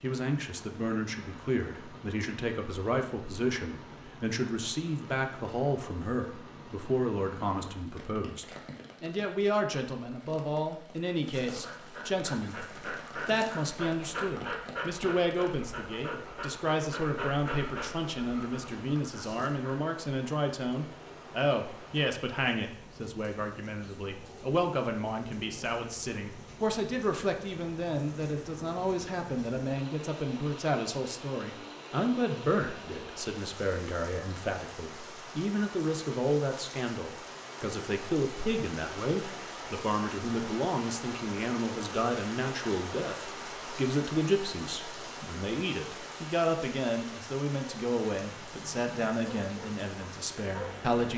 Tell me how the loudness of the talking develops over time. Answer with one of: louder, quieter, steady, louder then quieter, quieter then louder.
steady.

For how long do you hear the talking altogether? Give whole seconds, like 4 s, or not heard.
51 s.